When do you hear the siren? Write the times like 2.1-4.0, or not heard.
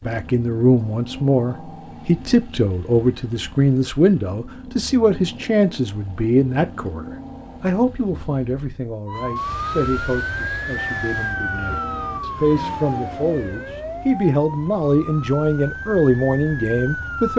9.1-17.3.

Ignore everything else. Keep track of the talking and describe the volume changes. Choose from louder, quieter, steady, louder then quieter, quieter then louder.
quieter then louder.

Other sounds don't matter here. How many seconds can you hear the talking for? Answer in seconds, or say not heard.
17 s.